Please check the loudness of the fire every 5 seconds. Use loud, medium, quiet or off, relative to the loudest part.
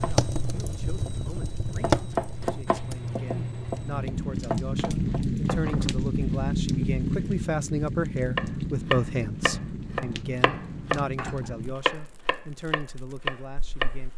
loud, loud, quiet.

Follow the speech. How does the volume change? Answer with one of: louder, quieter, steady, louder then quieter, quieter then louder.
louder then quieter.